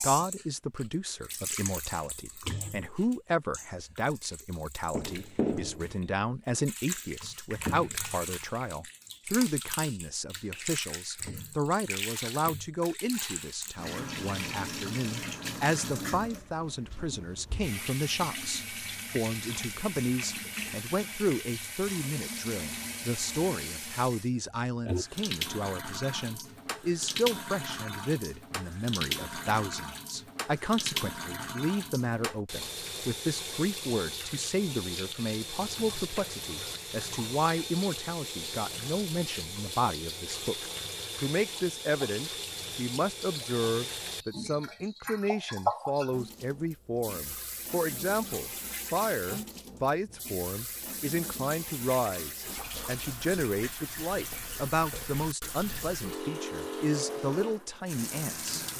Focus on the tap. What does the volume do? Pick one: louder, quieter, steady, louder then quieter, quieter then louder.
steady.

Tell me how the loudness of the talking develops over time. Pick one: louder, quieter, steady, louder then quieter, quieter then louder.
steady.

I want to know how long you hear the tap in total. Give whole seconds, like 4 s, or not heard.
59 s.